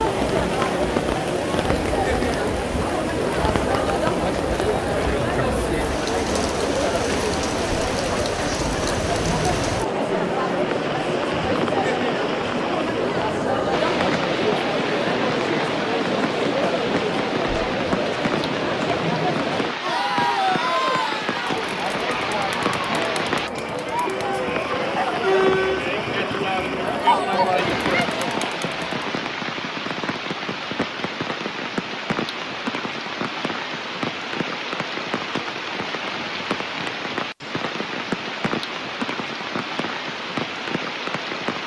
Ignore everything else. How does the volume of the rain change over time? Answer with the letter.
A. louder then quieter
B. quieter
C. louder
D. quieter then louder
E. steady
E.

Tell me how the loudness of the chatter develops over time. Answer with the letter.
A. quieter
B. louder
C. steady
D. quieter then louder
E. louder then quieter
C.